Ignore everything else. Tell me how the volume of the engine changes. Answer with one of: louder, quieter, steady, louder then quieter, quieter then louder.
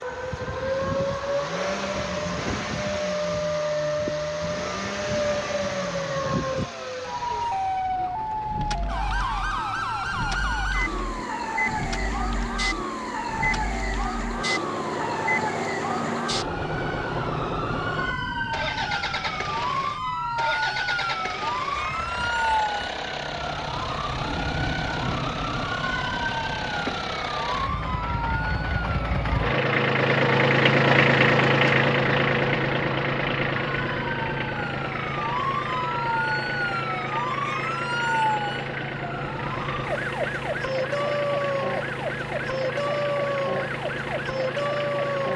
louder then quieter.